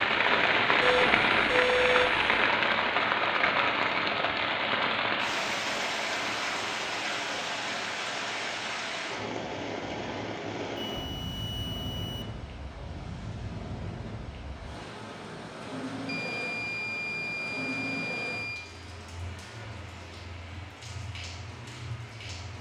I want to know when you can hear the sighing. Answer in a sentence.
The sighing can't be heard in this clip.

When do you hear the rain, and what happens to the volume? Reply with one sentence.
The rain can be heard from 0.0 to 22.5 s, getting quieter.